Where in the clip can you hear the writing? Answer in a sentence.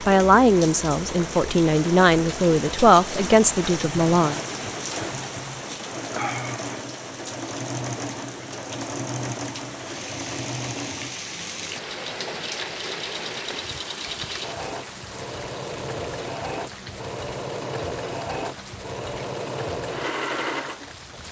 You can't hear the writing here.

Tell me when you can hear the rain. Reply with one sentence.
You can hear the rain from 0.0 to 21.2 s.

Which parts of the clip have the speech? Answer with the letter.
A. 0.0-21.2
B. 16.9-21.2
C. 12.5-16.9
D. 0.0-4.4
D.